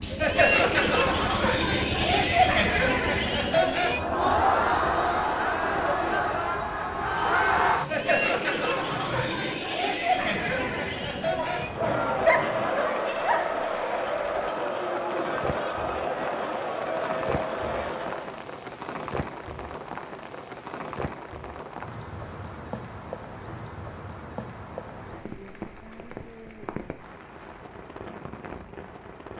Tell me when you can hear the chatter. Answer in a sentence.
You can hear the chatter from 0.0 to 18.4 s.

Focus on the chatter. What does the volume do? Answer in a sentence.
The volume of the chatter goes down.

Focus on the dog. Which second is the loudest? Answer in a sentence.
The volume of the dog peaks at 12 seconds.